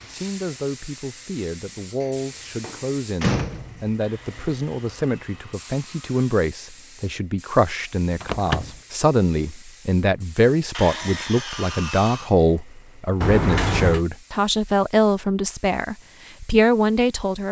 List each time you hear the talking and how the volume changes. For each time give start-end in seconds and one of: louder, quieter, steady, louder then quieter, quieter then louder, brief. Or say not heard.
0.0-17.4 louder.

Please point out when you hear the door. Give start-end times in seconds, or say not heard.
2.0-4.0, 8.2-8.8, 13.2-14.1.